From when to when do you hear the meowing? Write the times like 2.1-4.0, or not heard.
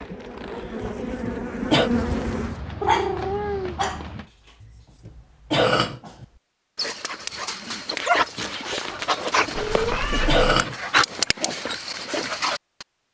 1.9-4.3, 9.6-10.4.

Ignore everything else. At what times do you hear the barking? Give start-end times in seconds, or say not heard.
2.9-12.8.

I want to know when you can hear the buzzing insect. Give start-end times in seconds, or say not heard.
0.0-2.6.